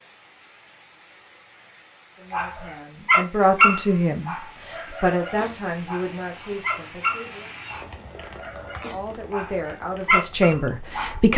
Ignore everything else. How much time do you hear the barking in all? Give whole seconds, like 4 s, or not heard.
9 s.